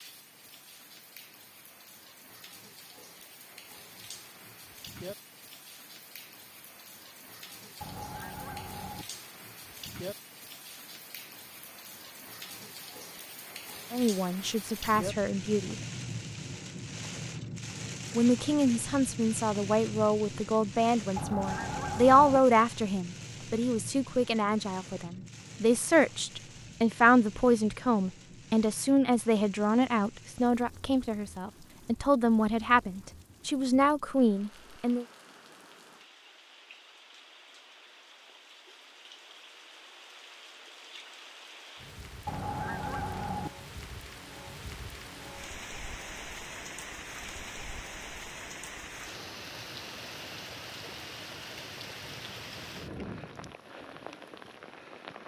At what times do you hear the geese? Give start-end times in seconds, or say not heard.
7.8-9.1, 21.1-22.4, 42.2-43.5.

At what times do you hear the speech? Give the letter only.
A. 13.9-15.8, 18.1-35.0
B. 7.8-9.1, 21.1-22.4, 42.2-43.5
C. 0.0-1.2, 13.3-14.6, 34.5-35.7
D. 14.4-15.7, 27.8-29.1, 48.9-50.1
A.